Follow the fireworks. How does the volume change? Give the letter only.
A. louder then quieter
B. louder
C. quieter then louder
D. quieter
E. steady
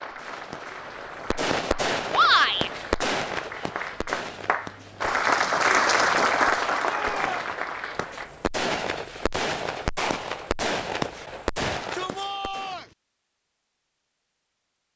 C.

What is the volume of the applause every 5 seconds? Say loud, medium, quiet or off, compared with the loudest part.
quiet, loud, off.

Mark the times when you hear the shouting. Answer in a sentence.
You can hear the shouting from 2.1 to 2.7 s, from 6.8 to 7.5 s and from 11.6 to 12.9 s.